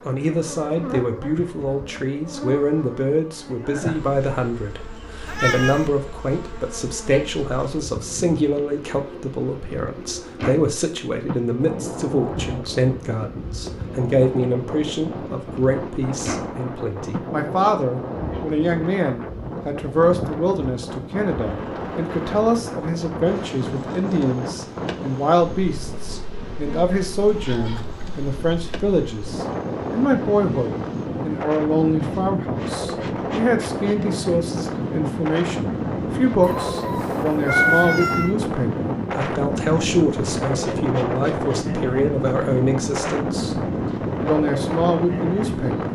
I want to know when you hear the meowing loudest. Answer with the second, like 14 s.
38 s.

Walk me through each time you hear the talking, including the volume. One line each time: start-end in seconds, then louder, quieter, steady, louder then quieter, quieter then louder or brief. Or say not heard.
0.1-45.9 steady.